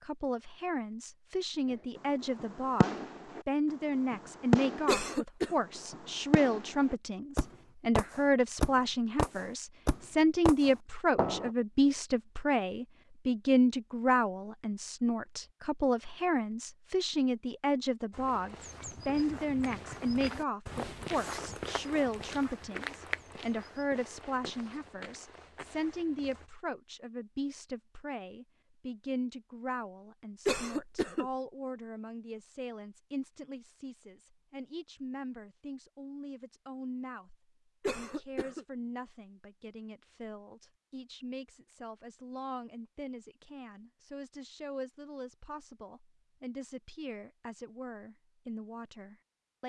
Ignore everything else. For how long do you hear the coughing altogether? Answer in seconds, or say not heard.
2 s.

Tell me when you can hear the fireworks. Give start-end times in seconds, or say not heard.
1.9-11.5.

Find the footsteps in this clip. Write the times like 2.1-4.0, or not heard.
18.1-26.5.